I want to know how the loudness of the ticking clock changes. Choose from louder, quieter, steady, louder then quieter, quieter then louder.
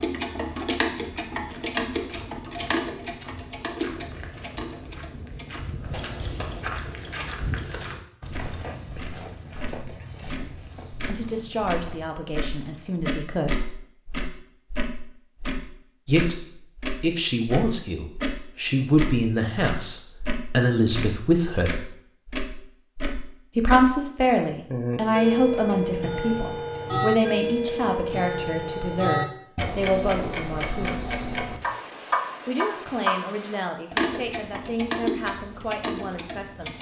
quieter then louder.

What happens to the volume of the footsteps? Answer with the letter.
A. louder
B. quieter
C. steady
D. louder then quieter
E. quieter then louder
D.